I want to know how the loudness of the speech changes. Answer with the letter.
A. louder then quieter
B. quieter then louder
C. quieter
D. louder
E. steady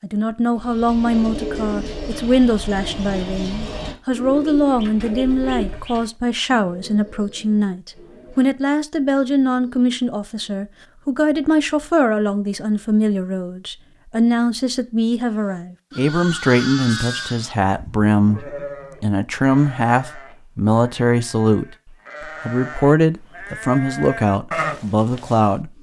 E.